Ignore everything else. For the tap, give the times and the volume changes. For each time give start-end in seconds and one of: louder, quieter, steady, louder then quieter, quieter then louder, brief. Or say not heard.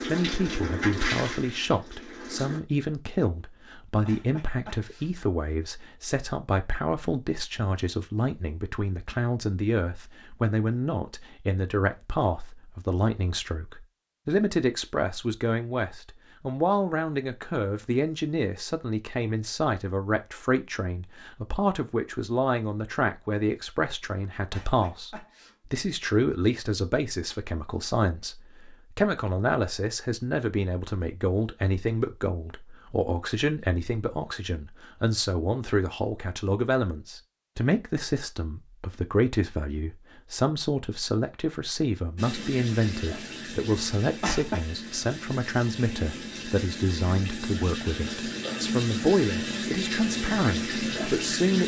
0.0-2.6 brief
42.1-51.6 louder.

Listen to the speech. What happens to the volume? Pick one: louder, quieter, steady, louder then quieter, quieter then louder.
steady.